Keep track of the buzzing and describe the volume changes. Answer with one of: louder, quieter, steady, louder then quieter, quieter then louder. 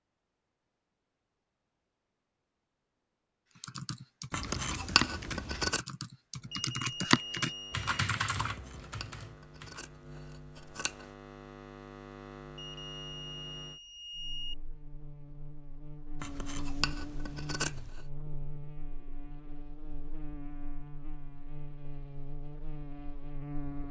louder.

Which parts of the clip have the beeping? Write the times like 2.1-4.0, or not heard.
6.5-7.9, 12.6-14.6.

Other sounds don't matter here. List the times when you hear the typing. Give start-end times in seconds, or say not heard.
3.5-9.8.